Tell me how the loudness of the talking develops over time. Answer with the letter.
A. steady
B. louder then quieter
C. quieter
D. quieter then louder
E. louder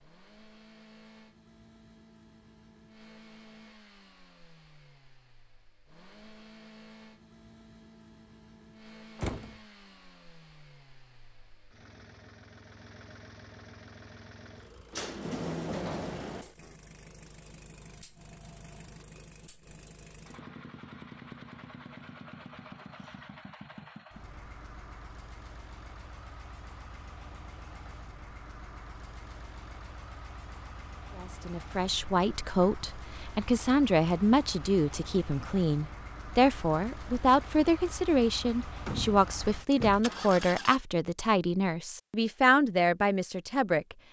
A.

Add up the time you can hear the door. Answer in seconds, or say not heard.
3 s.